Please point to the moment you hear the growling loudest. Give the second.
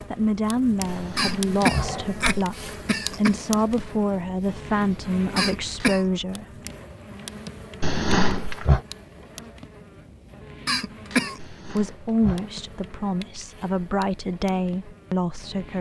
8 s.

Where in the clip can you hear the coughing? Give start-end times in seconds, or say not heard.
1.1-3.4, 5.3-6.0, 10.7-11.4.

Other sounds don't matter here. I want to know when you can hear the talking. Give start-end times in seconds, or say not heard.
0.1-6.5, 11.6-15.7.